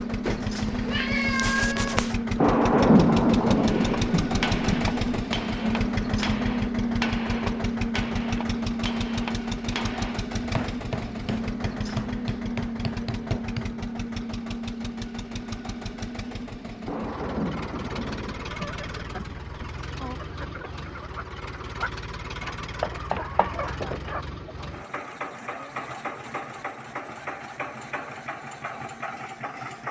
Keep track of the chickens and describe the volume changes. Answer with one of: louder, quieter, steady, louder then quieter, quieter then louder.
louder then quieter.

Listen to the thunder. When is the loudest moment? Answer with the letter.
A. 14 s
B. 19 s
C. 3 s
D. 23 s
C.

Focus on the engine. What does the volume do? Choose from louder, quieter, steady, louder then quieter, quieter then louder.
quieter.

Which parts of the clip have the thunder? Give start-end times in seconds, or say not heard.
2.4-5.0, 16.9-19.4.